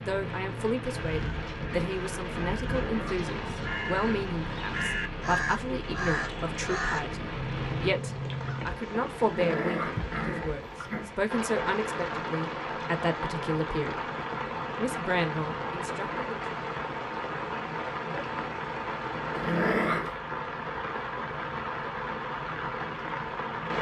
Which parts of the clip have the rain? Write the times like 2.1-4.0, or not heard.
0.0-23.7.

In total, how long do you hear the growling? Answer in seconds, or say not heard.
3 s.